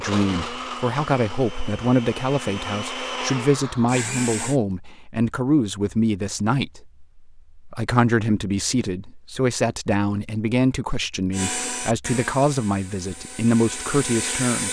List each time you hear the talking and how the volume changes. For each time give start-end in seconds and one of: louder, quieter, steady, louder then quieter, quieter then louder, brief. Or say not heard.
0.0-14.6 steady.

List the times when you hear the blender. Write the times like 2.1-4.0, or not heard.
0.0-4.6, 11.3-14.6.